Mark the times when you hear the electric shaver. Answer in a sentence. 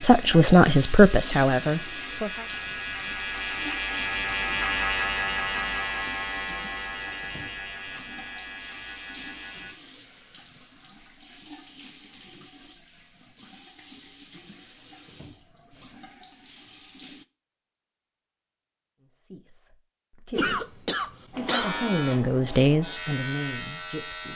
The electric shaver can be heard from 0.0 to 9.8 s and from 21.3 to 24.3 s.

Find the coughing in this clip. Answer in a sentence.
You can hear the coughing from 20.4 to 21.8 s.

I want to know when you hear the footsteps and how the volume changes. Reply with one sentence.
The footsteps can't be heard in this clip.